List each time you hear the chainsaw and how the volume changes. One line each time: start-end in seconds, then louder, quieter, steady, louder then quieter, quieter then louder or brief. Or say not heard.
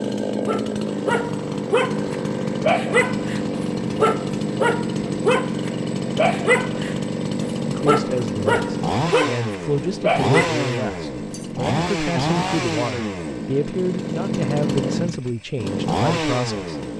0.0-16.9 steady.